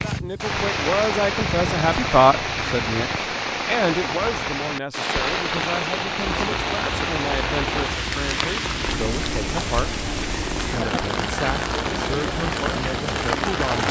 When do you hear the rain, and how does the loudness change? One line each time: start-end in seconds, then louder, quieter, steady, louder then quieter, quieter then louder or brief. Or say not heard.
0.0-13.8 steady.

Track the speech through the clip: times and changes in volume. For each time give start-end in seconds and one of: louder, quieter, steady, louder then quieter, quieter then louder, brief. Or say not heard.
0.0-13.8 quieter.